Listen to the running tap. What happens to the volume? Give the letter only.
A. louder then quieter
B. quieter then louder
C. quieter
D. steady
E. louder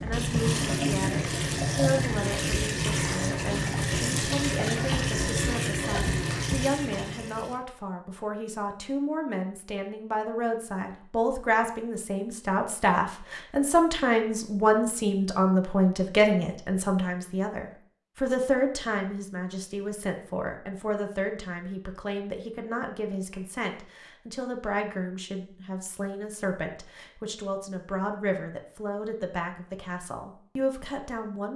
D.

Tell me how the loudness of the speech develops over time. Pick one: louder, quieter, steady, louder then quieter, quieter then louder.
louder then quieter.